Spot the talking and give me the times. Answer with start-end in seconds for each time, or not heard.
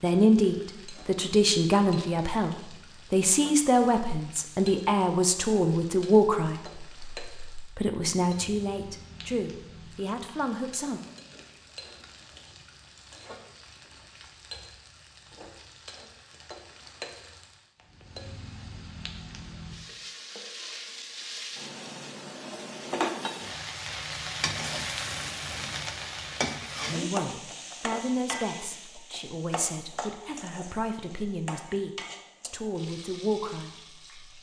0.0-11.0, 26.9-34.0.